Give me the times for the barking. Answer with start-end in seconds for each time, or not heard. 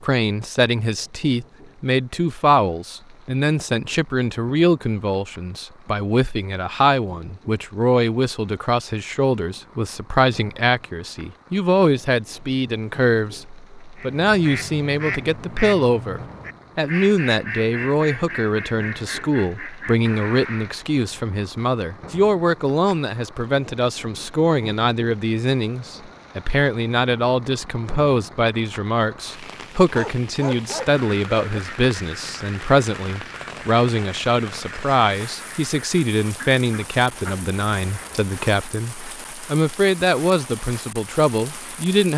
29.9-31.6.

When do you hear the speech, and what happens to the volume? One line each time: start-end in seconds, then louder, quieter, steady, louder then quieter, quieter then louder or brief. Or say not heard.
0.0-42.1 steady.